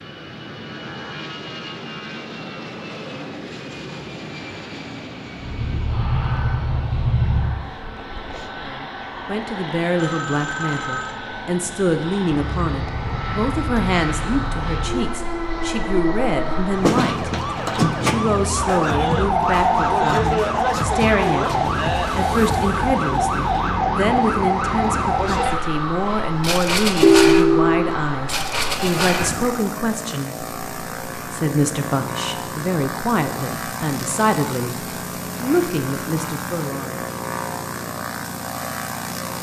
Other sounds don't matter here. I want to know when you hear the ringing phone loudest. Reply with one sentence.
The volume of the ringing phone peaks at 27 seconds.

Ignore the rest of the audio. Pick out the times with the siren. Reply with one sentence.
The siren can be heard from 5.4 to 7.7 s and from 12.5 to 29.4 s.